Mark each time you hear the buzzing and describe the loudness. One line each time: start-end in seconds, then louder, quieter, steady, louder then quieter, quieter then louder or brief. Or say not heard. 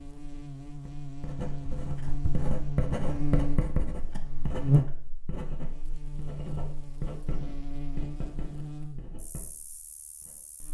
0.0-10.6 louder then quieter.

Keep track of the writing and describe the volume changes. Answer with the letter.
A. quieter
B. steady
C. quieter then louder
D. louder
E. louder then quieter
A.